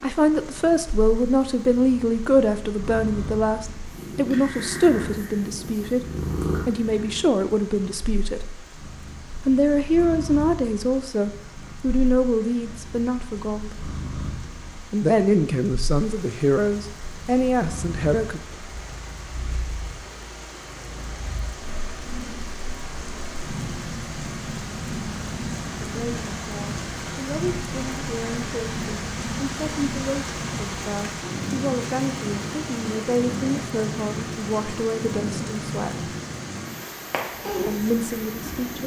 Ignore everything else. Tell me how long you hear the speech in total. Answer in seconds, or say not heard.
28 s.